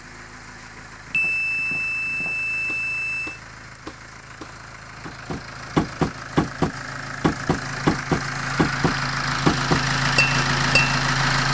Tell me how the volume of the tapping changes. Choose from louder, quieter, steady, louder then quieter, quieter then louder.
louder.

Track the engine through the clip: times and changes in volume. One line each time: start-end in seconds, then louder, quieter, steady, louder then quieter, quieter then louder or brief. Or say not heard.
0.0-11.5 louder.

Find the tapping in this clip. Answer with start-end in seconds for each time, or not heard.
0.8-11.0.